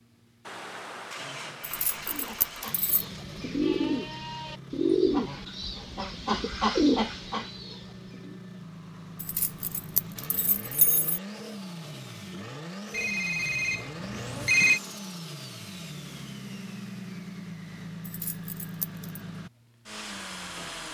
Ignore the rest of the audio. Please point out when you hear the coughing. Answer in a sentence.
You can't hear the coughing here.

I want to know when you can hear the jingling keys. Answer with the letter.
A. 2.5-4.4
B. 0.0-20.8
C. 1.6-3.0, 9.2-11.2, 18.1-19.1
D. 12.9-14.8
C.